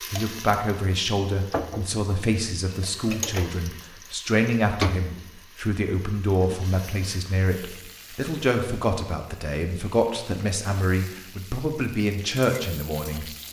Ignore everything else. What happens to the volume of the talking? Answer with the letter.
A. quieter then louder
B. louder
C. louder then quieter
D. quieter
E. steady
E.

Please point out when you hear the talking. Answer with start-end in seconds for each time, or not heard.
0.1-13.3.